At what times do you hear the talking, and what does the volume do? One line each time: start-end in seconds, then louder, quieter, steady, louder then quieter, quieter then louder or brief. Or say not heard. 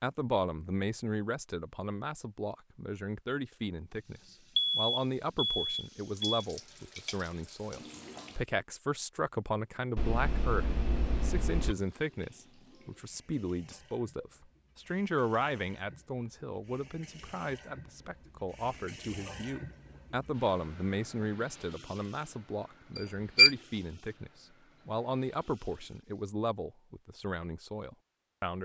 0.0-28.6 steady.